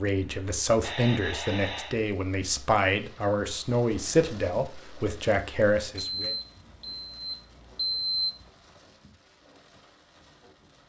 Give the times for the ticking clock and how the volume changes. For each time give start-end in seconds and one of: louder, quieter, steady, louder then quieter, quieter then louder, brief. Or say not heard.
not heard.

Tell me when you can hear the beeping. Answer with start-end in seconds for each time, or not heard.
0.8-1.9, 6.0-8.5.